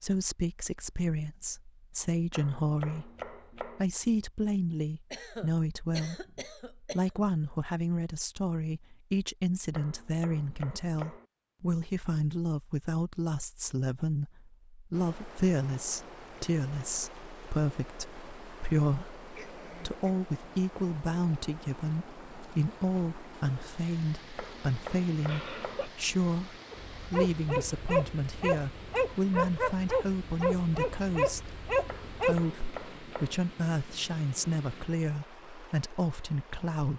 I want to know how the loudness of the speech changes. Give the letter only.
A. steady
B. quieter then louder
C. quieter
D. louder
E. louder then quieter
A.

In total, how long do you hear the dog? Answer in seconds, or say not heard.
6 s.